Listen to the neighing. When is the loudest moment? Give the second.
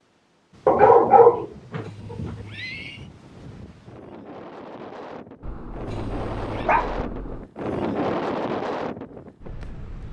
3 s.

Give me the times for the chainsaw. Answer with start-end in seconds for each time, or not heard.
not heard.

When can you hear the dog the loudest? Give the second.
1 s.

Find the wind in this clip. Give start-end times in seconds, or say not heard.
0.0-10.0.